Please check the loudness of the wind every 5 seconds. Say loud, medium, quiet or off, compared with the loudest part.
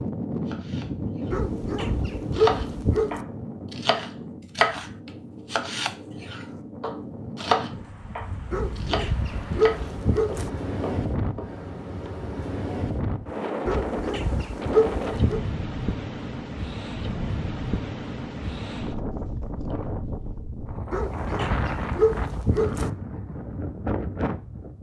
loud, medium, loud, loud, loud.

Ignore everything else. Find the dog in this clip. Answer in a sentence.
The dog can be heard from 1.3 to 3.2 s, from 8.5 to 10.5 s, from 13.7 to 15.4 s and from 20.9 to 22.9 s.